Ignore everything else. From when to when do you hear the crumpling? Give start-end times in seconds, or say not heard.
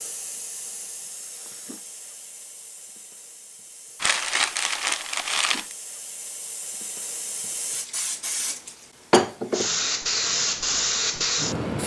4.0-5.8.